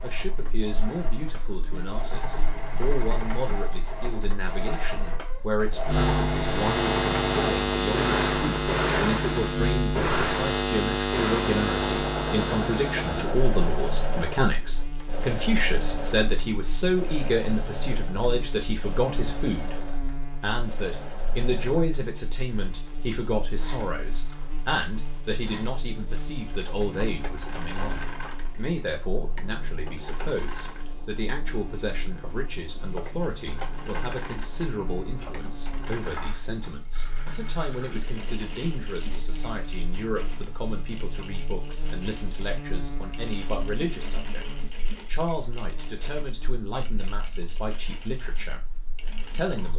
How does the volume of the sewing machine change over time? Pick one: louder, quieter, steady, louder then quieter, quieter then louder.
quieter.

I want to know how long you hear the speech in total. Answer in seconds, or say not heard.
49 s.